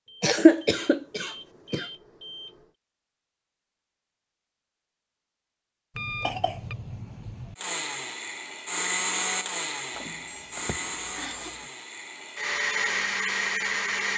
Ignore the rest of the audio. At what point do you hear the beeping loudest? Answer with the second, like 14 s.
6 s.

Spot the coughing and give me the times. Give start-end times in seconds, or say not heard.
0.2-1.9, 6.0-7.5, 10.6-11.5.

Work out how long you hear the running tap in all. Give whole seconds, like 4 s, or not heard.
not heard.